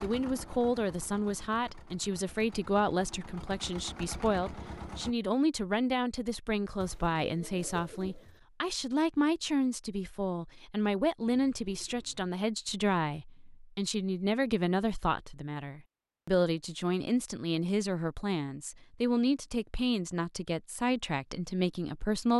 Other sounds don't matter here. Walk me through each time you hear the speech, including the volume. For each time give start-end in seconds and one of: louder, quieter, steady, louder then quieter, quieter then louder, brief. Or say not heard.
0.0-22.3 steady.